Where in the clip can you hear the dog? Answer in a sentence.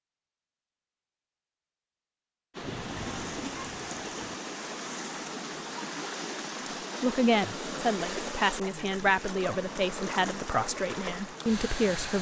The dog can't be heard in this clip.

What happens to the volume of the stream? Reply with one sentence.
The volume of the stream stays about the same.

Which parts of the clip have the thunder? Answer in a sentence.
You can hear the thunder from 2.6 to 4.3 s.